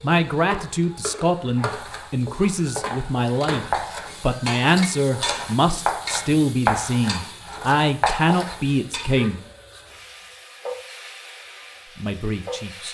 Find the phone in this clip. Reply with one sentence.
The phone can't be heard in this clip.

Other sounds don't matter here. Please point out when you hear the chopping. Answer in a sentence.
The chopping can be heard from 1.6 to 8.6 s.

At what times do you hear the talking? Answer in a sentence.
The talking can be heard from 0.0 to 9.4 s and from 11.9 to 12.8 s.